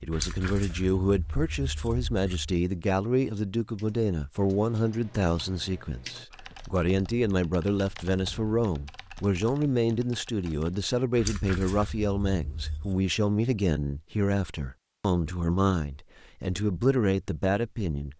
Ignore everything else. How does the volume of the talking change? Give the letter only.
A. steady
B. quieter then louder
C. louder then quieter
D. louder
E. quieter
A.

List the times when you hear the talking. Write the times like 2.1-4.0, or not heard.
0.0-18.1.